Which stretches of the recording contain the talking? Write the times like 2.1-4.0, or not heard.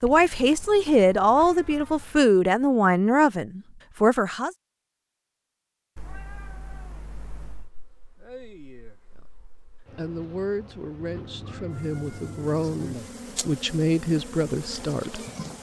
0.0-4.5, 9.9-15.2.